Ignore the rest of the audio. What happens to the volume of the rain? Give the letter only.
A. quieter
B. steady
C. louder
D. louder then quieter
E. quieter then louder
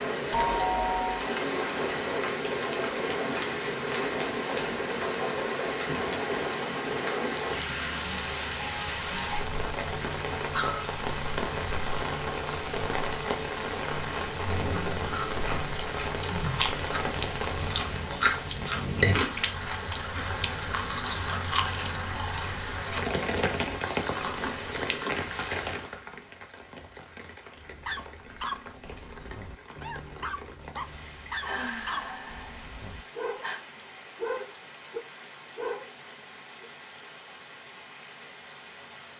A.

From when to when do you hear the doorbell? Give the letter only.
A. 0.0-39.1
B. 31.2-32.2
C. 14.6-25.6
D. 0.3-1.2
D.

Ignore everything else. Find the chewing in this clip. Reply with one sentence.
The chewing can be heard from 14.6 to 25.6 s.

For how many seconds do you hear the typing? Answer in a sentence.
You can't hear the typing here.